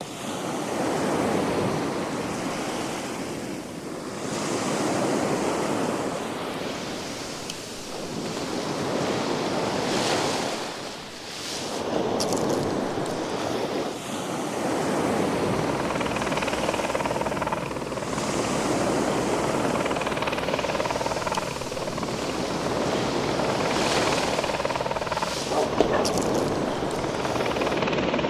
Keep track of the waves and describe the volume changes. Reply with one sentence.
The loudness of the waves stays about the same.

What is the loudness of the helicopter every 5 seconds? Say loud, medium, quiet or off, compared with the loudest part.
off, off, off, loud, loud, loud.